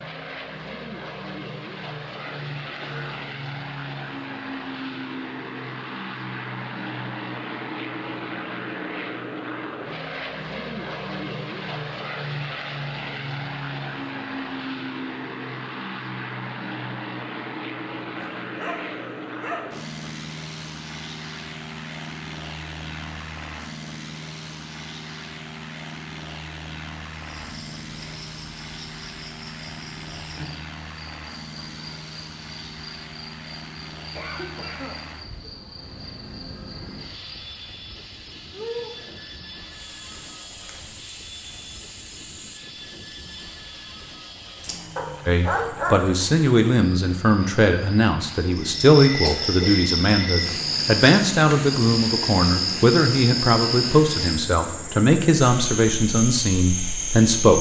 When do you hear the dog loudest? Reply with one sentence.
The loudest moment of the dog is at 46 seconds.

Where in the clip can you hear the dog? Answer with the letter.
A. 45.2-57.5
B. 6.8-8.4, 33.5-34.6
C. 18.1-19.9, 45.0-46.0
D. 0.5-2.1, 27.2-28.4
C.